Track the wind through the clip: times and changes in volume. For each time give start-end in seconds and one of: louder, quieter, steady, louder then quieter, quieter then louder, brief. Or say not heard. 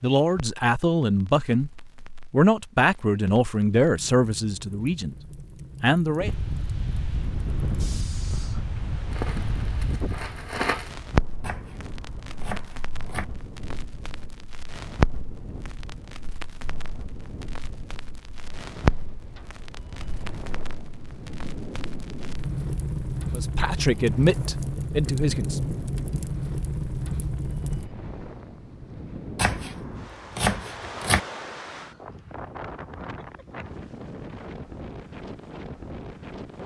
6.2-36.6 quieter then louder.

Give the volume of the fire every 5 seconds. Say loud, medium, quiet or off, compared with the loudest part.
quiet, medium, loud, loud, loud, loud, off, off.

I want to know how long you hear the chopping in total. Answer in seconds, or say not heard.
4 s.